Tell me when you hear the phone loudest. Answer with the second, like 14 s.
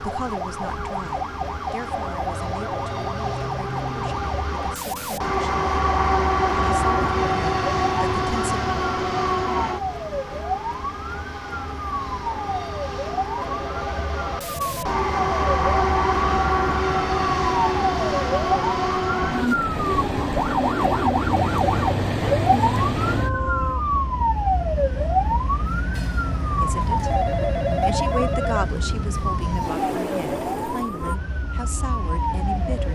28 s.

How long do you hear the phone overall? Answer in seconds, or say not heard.
5 s.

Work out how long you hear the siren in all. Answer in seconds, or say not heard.
33 s.